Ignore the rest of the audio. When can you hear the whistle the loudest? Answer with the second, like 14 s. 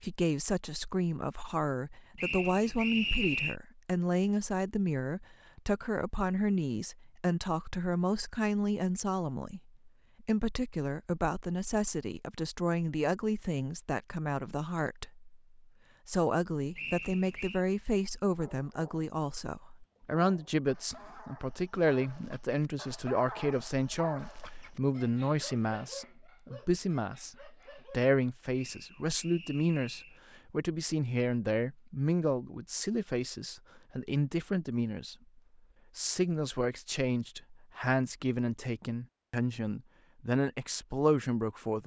3 s.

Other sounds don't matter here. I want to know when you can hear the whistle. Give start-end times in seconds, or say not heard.
2.1-3.5, 16.8-17.6, 28.6-30.2.